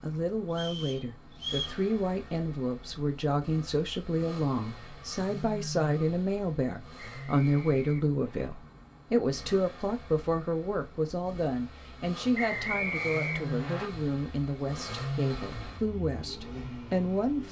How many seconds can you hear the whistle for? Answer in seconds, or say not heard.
4 s.